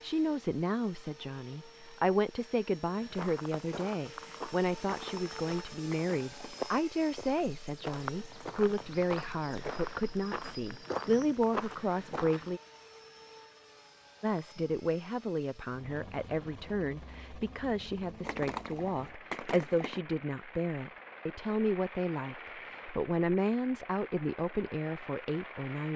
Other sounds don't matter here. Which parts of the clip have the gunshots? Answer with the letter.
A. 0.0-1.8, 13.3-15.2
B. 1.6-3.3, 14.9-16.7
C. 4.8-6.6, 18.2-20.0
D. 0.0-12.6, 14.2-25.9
C.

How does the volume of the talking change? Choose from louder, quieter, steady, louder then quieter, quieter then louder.
steady.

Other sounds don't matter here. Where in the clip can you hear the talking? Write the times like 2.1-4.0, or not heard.
0.0-12.6, 14.2-25.9.